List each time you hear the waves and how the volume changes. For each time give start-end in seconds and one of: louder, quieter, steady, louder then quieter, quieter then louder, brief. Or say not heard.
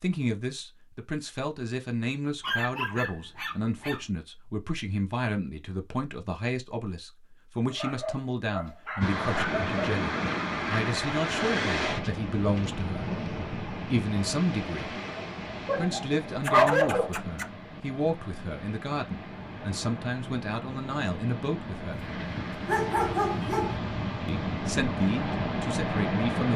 9.0-26.5 quieter then louder.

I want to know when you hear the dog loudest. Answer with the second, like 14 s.
17 s.